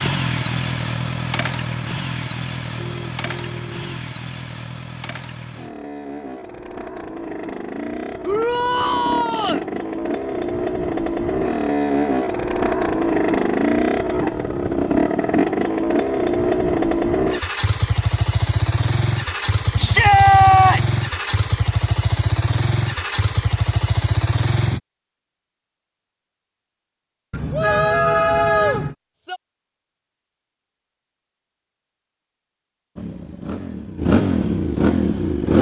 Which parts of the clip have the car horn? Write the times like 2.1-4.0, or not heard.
2.8-3.9, 27.3-28.9.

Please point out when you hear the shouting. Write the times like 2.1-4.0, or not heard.
8.2-9.7, 19.8-21.0, 27.5-29.4.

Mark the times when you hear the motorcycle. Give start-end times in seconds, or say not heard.
0.0-24.8, 33.0-35.5.